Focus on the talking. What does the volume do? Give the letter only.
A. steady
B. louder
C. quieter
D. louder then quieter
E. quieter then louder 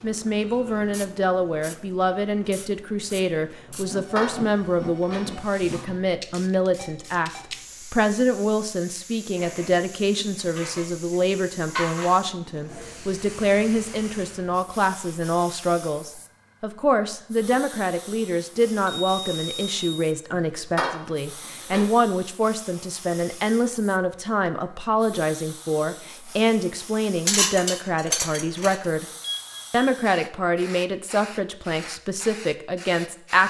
A.